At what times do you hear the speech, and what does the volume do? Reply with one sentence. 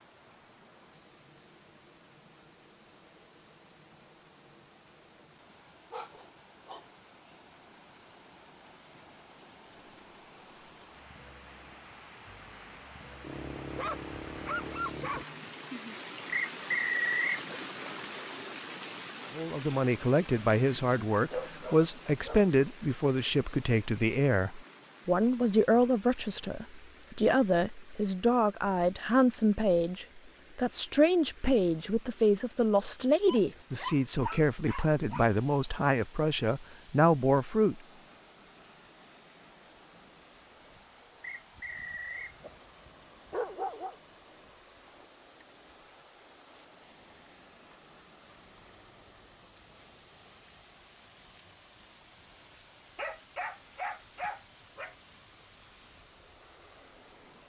You can hear the speech from 19.4 to 37.8 s, at a steady volume.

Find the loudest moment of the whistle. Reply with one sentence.
The volume of the whistle peaks at 17 seconds.